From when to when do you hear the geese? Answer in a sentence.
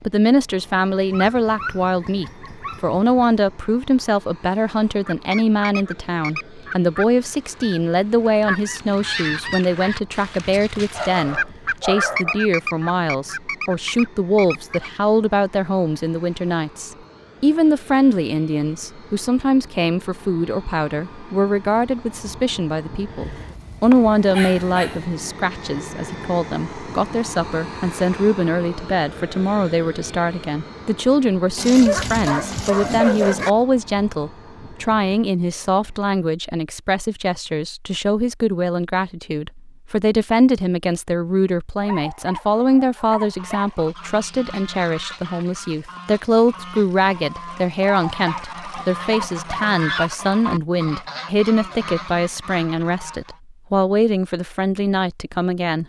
The geese can be heard from 5.0 to 14.9 s and from 43.2 to 53.4 s.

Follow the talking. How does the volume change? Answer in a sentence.
The volume of the talking stays about the same.